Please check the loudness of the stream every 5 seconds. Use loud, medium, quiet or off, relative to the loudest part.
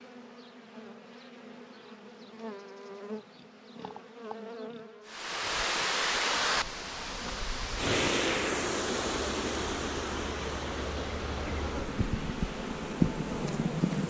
off, loud, medium.